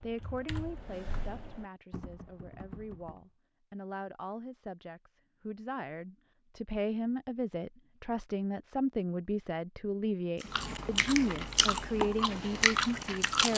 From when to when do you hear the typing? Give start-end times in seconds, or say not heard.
0.0-3.2.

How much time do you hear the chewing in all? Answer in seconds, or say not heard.
3 s.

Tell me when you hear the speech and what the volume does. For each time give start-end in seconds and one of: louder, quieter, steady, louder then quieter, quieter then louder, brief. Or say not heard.
0.0-13.5 louder.